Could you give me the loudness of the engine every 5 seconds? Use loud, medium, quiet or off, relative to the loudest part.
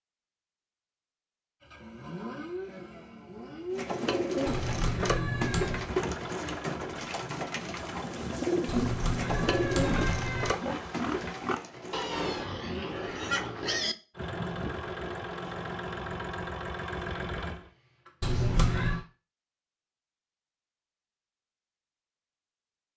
loud, loud, loud, loud, off.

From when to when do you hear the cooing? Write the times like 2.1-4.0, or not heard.
3.7-12.4.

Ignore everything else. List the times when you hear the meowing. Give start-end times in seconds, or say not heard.
4.5-5.8, 8.7-10.6, 18.2-19.1.